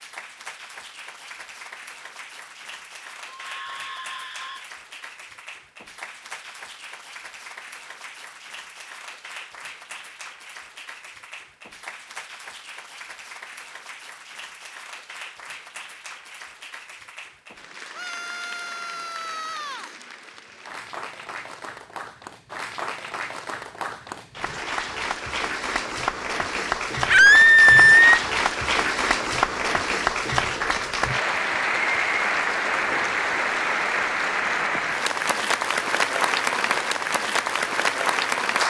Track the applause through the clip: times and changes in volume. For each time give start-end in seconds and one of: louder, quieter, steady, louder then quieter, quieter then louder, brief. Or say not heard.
0.0-38.6 louder.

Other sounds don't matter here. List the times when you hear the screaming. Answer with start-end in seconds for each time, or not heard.
3.2-4.7, 17.9-19.9, 27.1-28.2.